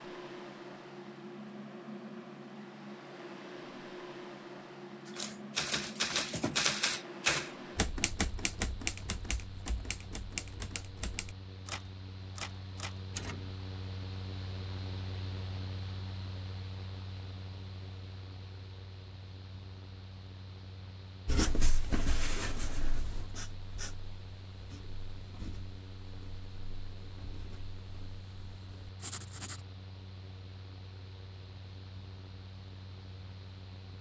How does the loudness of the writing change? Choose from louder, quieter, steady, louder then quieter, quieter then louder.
quieter then louder.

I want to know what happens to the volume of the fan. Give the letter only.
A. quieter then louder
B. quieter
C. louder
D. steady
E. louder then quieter
B.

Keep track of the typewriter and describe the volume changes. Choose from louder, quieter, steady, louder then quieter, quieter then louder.
quieter.